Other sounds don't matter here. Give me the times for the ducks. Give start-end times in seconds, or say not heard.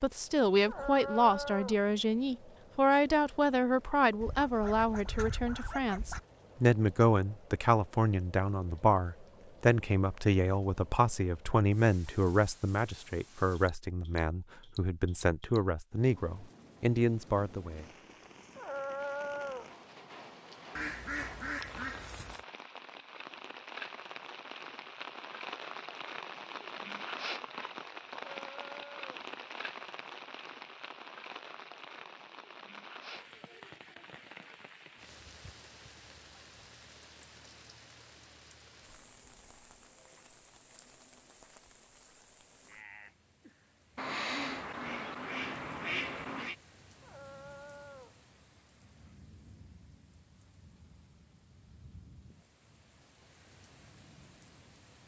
4.2-6.2, 20.8-22.4, 44.0-46.5.